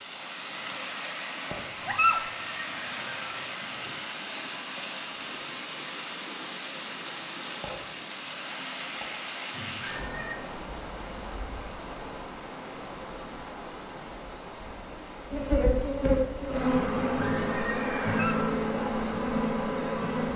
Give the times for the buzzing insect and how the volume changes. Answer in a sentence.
The buzzing insect can be heard from 15.3 to 20.3 s, at a steady volume.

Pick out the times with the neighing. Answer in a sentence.
The neighing can be heard from 1.8 to 4.0 s, from 9.5 to 10.4 s and from 17.1 to 18.4 s.